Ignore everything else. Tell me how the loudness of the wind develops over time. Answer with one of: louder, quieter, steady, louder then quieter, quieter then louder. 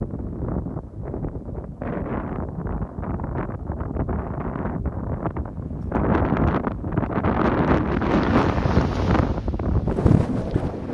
louder.